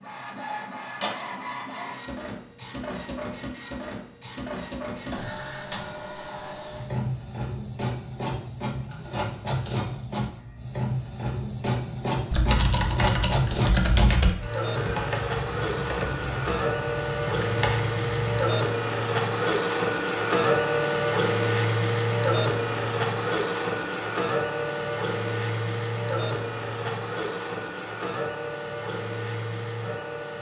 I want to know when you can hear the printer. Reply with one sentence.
The printer can be heard from 0.0 to 30.3 s.